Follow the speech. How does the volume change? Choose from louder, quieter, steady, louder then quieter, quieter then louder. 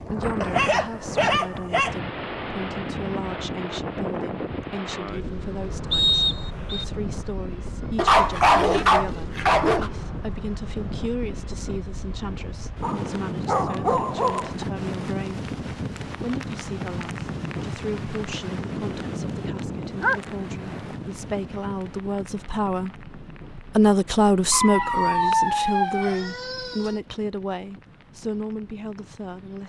louder.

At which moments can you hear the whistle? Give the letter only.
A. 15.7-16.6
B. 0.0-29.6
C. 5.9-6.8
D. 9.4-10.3
C.